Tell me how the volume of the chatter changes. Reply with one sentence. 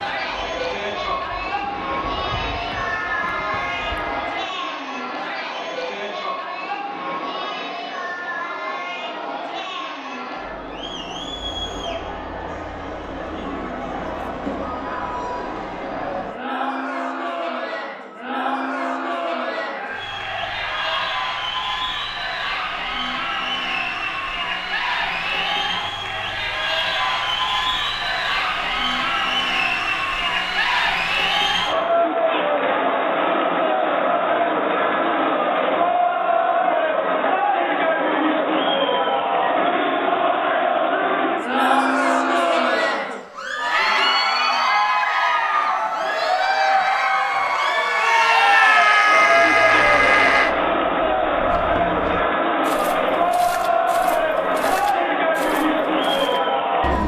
The volume of the chatter goes up.